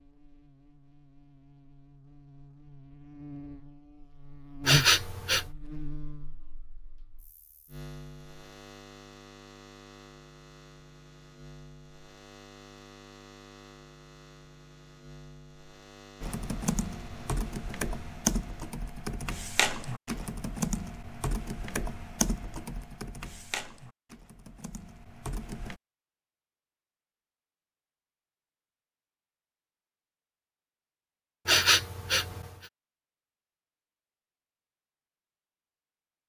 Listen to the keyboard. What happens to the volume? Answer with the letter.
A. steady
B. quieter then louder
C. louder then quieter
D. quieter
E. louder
D.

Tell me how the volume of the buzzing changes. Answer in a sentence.
The loudness of the buzzing goes up, then down.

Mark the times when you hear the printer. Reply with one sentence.
The printer can't be heard in this clip.